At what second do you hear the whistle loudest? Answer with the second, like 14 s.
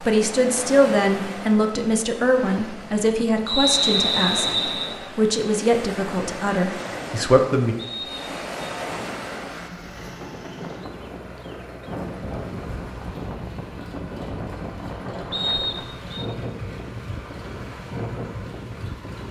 4 s.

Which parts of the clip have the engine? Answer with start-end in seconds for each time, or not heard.
9.1-19.2.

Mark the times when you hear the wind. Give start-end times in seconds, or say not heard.
0.0-19.2.